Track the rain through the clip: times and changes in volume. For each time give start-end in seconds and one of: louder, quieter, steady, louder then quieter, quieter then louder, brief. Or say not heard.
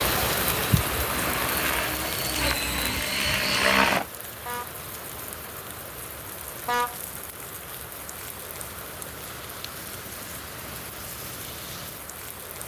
0.0-12.6 quieter.